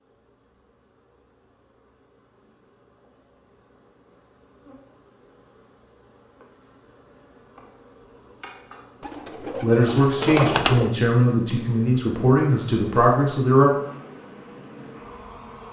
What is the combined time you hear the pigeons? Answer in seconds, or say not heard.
2 s.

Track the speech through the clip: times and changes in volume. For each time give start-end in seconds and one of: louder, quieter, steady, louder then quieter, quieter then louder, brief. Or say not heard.
9.4-13.7 steady.